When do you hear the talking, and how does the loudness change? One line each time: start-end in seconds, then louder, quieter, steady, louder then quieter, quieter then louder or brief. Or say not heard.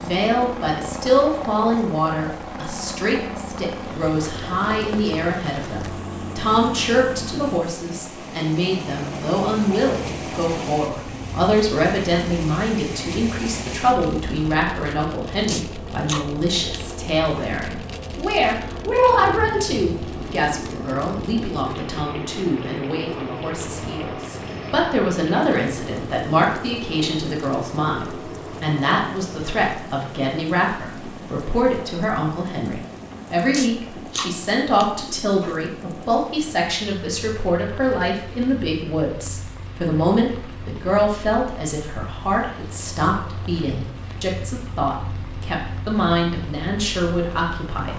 0.0-47.9 steady.